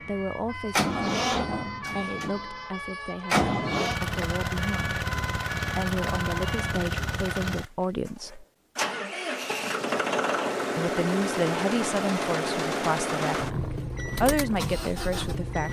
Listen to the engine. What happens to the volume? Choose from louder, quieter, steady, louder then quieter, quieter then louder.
steady.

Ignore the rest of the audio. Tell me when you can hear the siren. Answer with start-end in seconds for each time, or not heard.
0.0-6.8.